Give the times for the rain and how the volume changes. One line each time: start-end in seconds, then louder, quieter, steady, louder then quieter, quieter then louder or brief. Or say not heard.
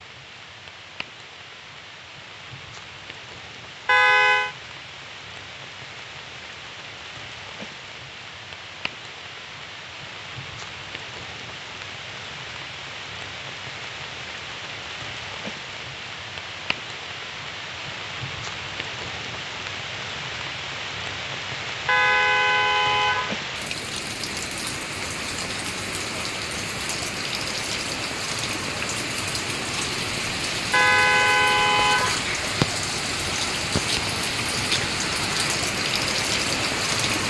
0.0-37.2 louder.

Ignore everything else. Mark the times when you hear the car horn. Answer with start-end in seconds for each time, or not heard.
3.9-4.5, 21.9-23.4, 30.7-32.2.